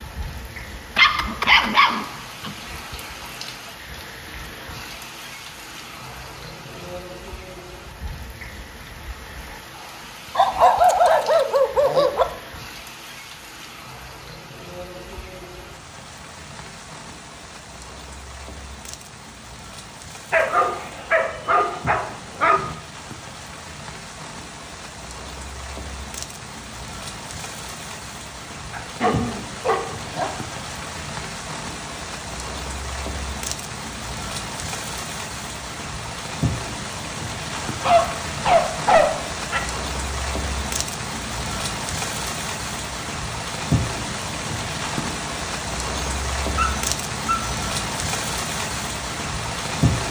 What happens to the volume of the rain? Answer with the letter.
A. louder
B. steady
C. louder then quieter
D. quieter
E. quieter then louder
A.